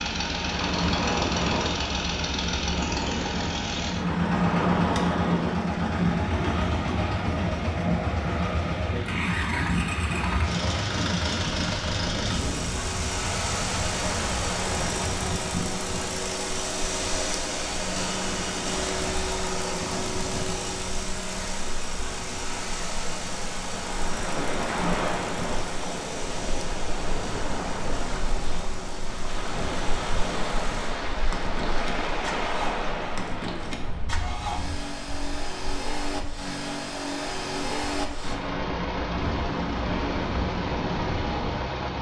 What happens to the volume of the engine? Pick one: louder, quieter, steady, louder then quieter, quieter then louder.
quieter then louder.